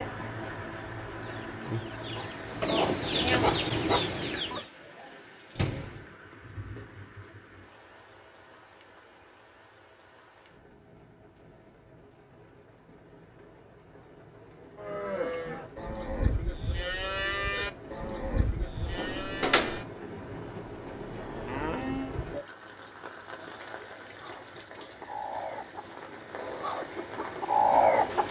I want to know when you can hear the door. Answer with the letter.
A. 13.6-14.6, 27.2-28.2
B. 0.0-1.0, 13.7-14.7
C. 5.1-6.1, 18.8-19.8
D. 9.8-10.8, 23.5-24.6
C.